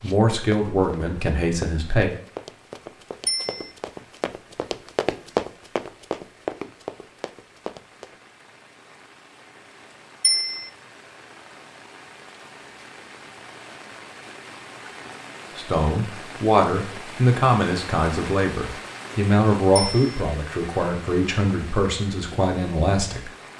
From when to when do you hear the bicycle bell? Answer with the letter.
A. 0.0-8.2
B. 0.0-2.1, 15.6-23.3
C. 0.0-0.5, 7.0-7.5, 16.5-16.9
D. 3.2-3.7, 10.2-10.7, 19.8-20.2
D.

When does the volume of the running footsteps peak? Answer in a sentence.
The volume of the running footsteps peaks at 5 seconds.